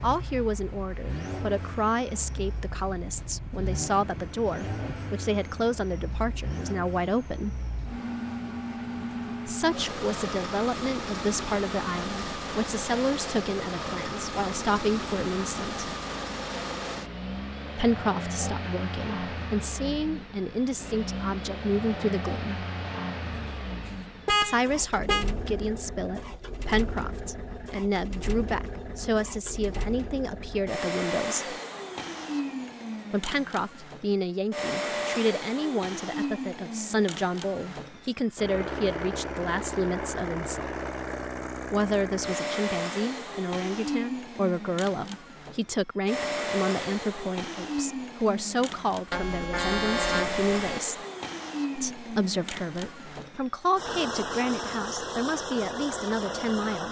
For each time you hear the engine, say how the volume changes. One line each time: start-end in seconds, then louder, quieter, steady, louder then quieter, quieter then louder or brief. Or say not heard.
0.0-56.8 steady.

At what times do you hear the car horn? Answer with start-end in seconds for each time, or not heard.
23.3-25.2, 49.1-50.8.